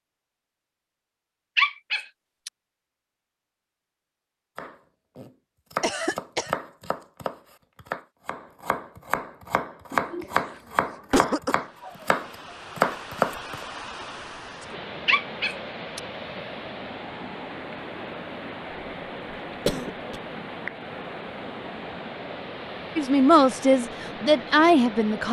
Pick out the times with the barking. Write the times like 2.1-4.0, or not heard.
1.6-2.5, 15.1-16.0.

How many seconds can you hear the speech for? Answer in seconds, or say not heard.
2 s.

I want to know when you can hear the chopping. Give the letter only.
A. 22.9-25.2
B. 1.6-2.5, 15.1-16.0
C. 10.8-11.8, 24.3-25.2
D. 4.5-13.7
D.